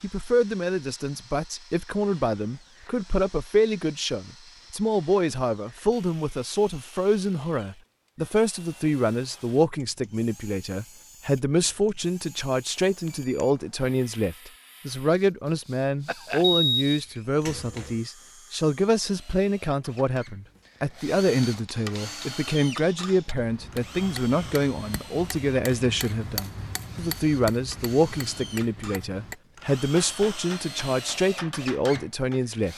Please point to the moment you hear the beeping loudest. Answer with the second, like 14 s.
17 s.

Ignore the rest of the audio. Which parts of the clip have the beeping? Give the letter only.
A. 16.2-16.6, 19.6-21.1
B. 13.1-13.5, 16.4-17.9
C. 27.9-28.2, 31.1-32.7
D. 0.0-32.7
B.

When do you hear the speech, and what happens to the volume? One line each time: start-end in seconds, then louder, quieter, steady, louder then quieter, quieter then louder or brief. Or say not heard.
0.0-32.7 steady.